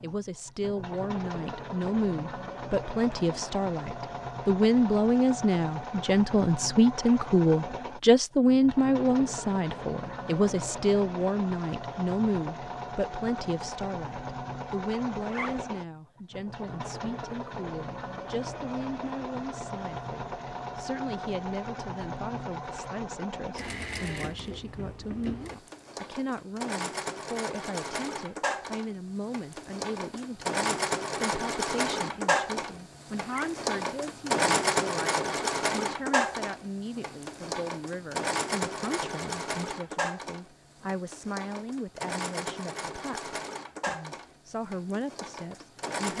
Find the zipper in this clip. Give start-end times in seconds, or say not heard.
15.2-15.7, 33.2-33.6.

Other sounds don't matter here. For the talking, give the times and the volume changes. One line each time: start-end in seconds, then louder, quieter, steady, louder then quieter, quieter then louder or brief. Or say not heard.
0.0-46.1 quieter.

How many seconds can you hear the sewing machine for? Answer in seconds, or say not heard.
46 s.